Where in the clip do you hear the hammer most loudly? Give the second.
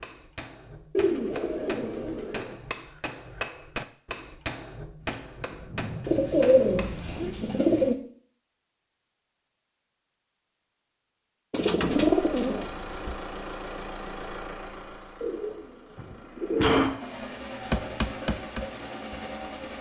18 s.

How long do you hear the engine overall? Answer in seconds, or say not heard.
8 s.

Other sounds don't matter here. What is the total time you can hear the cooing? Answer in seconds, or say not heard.
7 s.